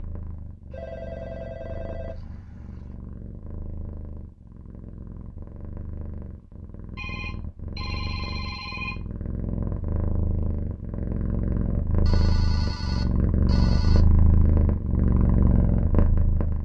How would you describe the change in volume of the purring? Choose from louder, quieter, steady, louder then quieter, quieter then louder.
louder.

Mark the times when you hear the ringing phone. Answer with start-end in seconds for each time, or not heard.
0.7-3.0, 7.0-9.0, 12.1-14.1.